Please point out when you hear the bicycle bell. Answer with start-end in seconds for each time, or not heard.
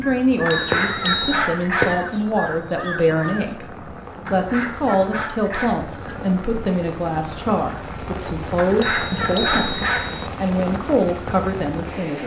0.5-1.4, 8.8-10.3.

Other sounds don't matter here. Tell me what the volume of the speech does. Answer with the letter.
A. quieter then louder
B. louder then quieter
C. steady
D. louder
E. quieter
C.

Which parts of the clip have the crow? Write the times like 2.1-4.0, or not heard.
0.0-3.5.